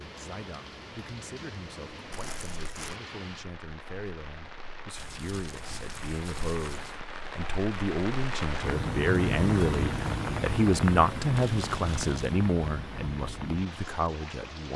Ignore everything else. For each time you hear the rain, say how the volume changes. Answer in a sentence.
You can hear the rain from 0.0 to 14.7 s, getting louder then quieter.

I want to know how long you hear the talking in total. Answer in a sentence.
You can hear the talking for 15 seconds altogether.